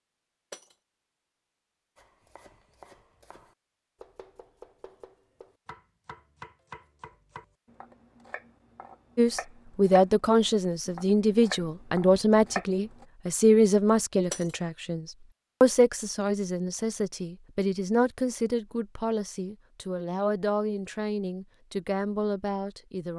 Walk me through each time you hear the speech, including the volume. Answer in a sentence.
The speech can be heard from 9.2 to 23.1 s, getting quieter.